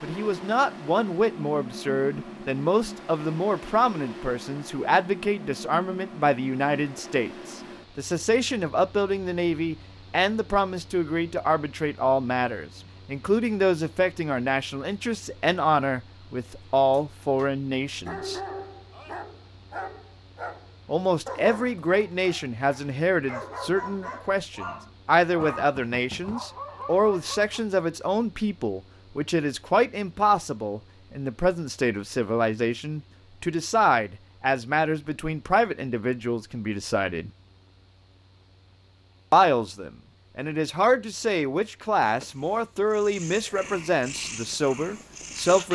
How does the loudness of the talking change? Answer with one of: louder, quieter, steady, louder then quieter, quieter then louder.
steady.